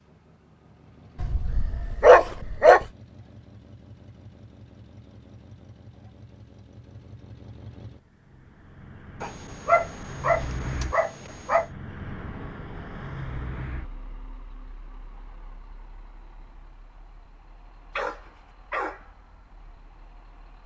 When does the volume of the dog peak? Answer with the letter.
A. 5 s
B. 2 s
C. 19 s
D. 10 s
B.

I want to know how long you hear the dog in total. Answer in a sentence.
The dog can be heard for 5 seconds in total.